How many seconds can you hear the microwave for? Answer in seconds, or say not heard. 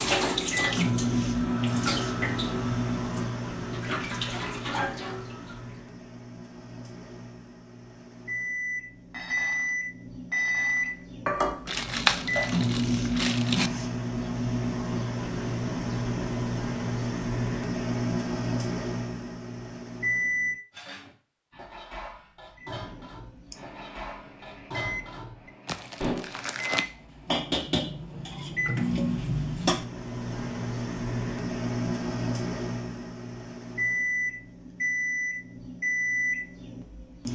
35 s.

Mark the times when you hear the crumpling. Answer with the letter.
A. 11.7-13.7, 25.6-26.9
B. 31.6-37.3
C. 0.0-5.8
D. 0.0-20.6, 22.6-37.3
A.